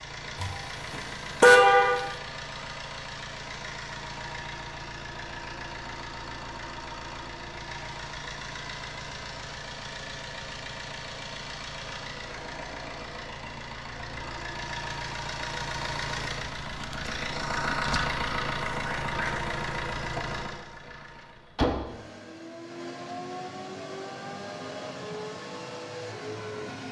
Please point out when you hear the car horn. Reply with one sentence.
The car horn can be heard from 0.4 to 2.1 s.